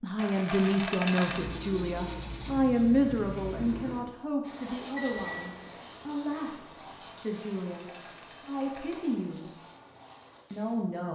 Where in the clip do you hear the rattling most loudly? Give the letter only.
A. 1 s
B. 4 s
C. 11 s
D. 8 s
A.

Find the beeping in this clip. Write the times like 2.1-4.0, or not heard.
5.0-5.8.